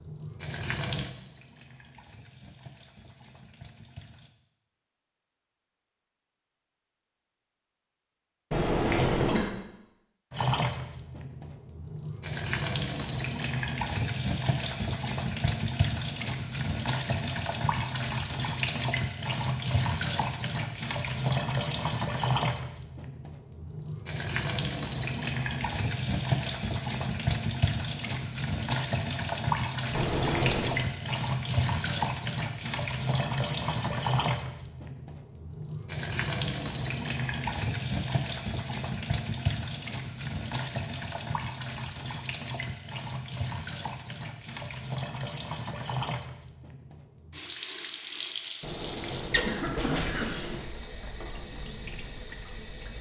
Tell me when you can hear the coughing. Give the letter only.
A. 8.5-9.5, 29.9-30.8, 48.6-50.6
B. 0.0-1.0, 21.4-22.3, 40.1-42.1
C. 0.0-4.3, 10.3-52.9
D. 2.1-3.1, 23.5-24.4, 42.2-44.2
A.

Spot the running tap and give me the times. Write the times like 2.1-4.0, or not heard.
0.0-4.3, 10.3-52.9.